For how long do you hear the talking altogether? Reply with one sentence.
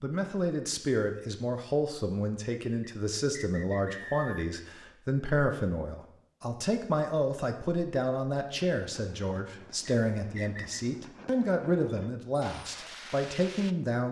The talking can be heard for 14 seconds in total.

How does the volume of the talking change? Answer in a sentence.
The volume of the talking stays about the same.